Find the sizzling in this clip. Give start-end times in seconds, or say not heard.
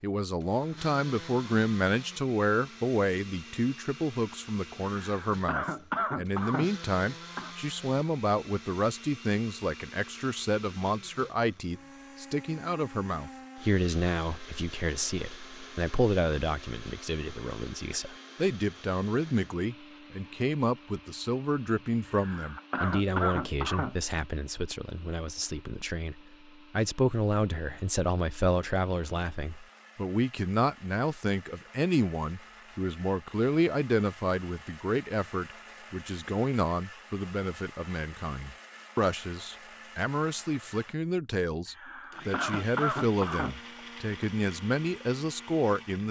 not heard.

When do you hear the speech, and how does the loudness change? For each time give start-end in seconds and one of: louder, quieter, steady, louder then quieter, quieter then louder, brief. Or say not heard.
0.0-46.0 steady.